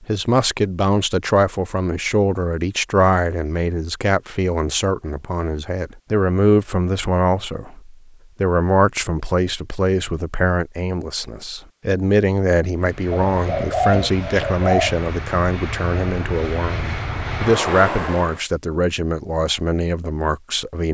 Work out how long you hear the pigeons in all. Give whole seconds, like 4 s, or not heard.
2 s.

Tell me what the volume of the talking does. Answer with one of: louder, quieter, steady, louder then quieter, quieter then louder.
steady.